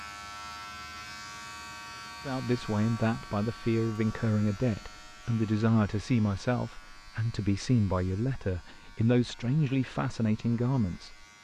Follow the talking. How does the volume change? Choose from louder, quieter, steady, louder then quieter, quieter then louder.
steady.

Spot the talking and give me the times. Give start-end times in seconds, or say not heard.
2.2-11.2.